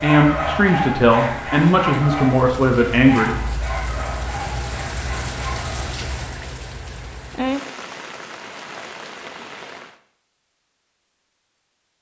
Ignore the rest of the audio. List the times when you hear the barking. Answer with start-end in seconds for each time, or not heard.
0.0-5.8.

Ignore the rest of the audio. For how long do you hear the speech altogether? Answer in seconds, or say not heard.
3 s.